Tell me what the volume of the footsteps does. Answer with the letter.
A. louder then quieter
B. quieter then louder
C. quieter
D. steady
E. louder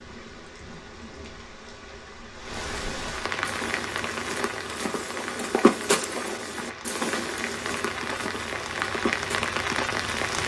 A.